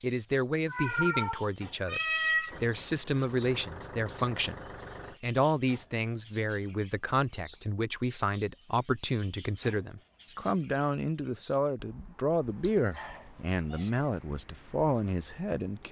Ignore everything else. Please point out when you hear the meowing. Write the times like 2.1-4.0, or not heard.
0.7-2.5, 12.6-13.9.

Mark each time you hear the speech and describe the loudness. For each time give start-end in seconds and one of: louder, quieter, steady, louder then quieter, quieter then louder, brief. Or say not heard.
0.0-15.8 steady.